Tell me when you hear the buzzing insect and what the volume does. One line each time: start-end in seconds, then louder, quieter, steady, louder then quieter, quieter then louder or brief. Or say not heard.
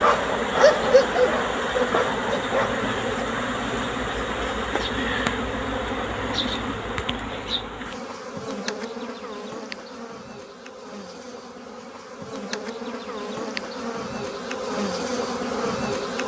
0.0-16.2 quieter then louder.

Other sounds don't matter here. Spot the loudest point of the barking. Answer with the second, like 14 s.
1 s.